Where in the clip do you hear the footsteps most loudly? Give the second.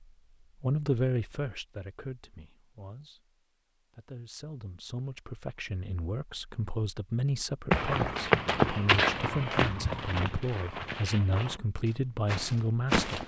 8 s.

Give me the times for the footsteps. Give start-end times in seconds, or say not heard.
7.7-13.2.